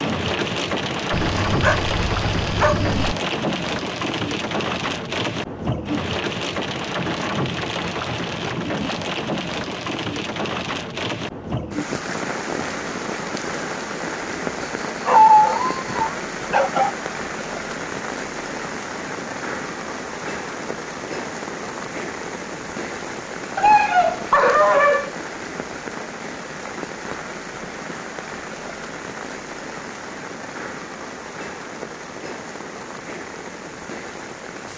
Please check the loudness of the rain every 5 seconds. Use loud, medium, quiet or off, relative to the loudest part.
loud, loud, loud, medium, medium, medium, medium.